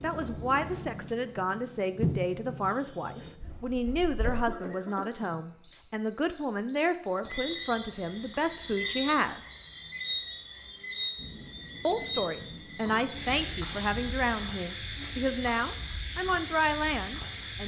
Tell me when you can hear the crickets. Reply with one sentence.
You can hear the crickets from 0.0 to 17.6 s.